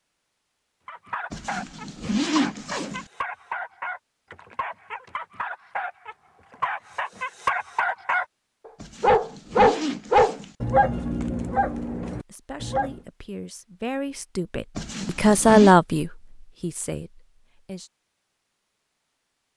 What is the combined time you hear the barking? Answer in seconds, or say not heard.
12 s.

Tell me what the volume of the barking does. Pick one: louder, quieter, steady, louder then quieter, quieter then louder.
louder then quieter.